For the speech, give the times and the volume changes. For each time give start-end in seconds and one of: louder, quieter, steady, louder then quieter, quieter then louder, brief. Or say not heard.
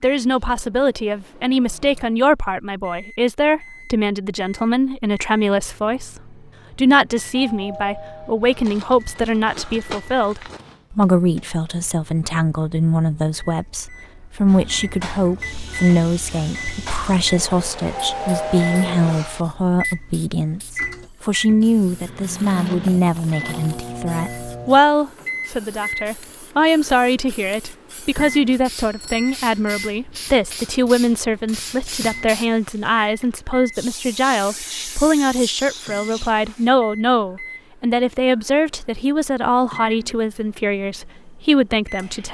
0.0-42.2 steady.